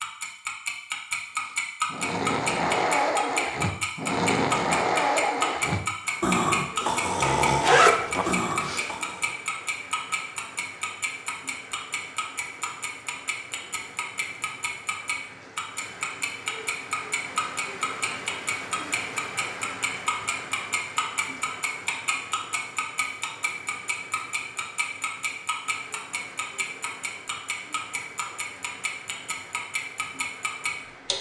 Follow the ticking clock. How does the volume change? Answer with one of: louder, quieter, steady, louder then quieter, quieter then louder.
quieter.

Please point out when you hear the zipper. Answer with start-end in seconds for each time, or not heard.
7.4-8.9.